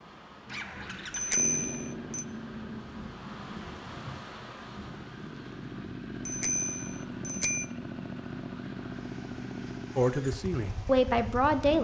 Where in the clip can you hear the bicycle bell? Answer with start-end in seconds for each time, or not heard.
1.1-2.2, 6.2-7.7.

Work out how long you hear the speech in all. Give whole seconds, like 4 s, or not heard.
2 s.